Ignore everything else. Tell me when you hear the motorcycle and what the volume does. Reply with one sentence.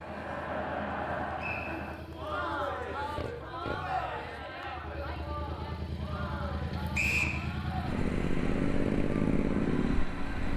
You can hear the motorcycle from 0.0 to 10.5 s, getting louder.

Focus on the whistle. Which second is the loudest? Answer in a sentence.
The loudest moment of the whistle is at 7 seconds.